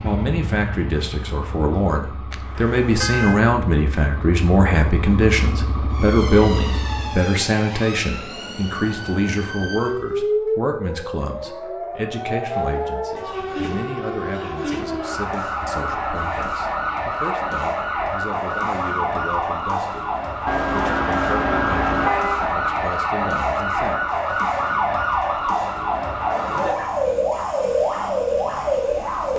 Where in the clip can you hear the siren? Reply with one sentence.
You can hear the siren from 5.9 to 29.3 s.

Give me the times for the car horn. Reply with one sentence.
The car horn can be heard from 2.3 to 3.4 s and from 20.4 to 22.5 s.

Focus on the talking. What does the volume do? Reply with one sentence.
The volume of the talking goes down.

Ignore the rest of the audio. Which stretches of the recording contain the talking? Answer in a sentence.
You can hear the talking from 0.0 to 20.1 s and from 20.7 to 24.1 s.